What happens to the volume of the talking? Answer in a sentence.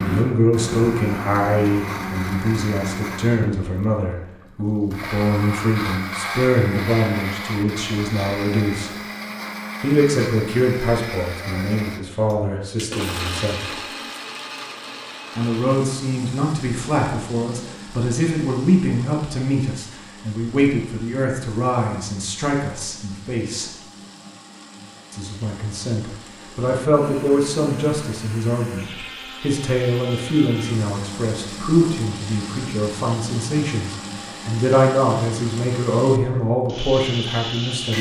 The volume of the talking stays about the same.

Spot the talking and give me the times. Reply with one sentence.
The talking can be heard from 0.0 to 8.9 s, from 9.8 to 13.8 s, from 15.3 to 23.8 s and from 25.1 to 37.9 s.